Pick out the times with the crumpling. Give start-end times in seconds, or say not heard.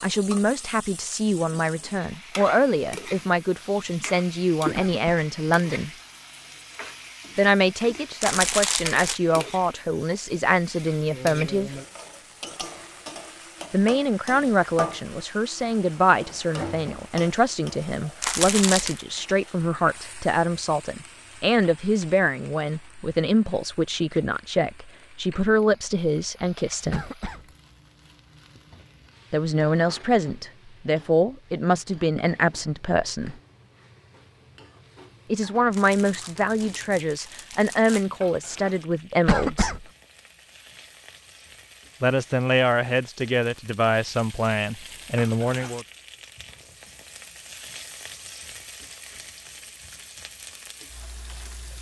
8.2-9.2, 18.2-19.1, 35.7-38.1.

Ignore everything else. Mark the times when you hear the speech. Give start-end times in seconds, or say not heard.
0.0-5.9, 7.3-11.7, 13.7-27.1, 29.3-33.4, 35.3-39.7, 42.0-45.9.